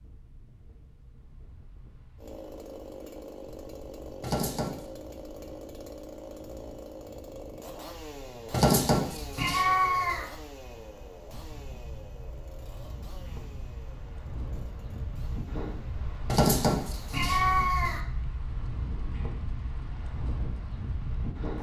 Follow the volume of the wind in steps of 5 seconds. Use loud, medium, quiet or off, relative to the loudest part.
quiet, quiet, medium, loud, loud.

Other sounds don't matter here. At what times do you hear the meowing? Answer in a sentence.
The meowing can be heard from 4.2 to 4.7 s, from 8.5 to 10.2 s and from 16.2 to 18.0 s.